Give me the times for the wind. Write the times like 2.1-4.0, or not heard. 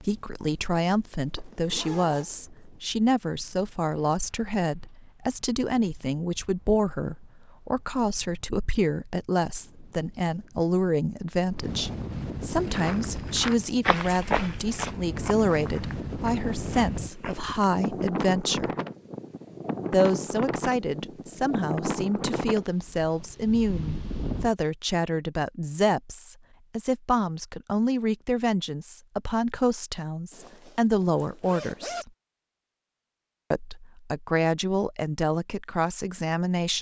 0.0-24.5.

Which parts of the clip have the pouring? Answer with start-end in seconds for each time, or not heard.
not heard.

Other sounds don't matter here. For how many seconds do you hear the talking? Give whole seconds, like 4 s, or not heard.
34 s.